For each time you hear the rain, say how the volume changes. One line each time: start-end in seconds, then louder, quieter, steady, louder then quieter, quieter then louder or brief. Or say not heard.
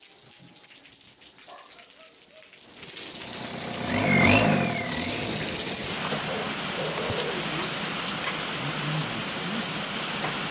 0.0-10.4 louder.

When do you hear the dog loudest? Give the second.
7 s.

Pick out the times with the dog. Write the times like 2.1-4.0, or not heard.
1.4-2.5, 6.2-7.5.